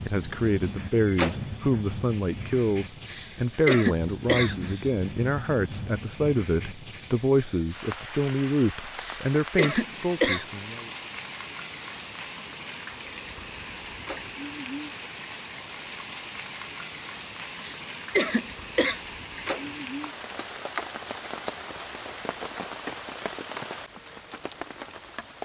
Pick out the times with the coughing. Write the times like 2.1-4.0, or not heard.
3.0-4.8, 9.0-10.4, 17.6-19.0.